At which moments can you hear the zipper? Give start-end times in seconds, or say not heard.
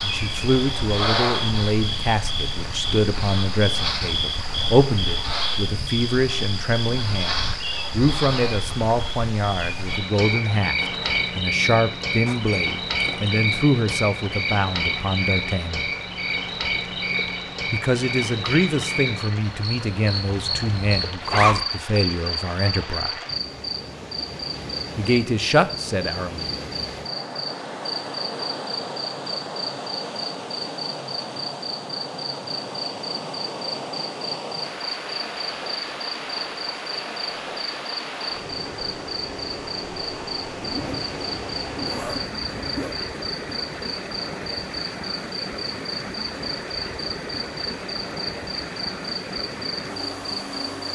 12.2-13.4, 21.2-21.6, 40.6-43.0.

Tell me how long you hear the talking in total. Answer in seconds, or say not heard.
23 s.